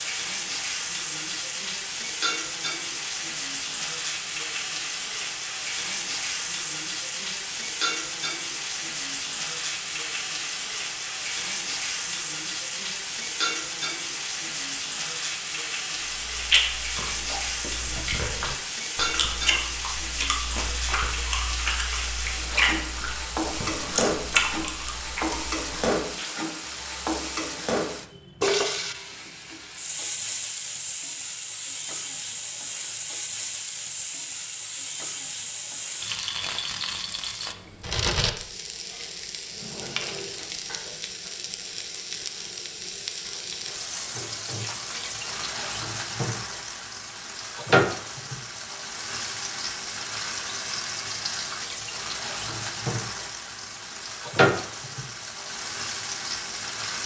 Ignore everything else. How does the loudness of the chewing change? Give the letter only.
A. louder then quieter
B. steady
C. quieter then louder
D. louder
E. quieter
D.